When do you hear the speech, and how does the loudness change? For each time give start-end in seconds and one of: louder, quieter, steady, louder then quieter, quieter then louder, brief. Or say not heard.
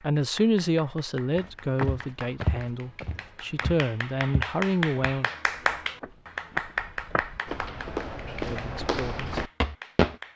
0.0-5.3 quieter then louder
8.4-9.4 brief.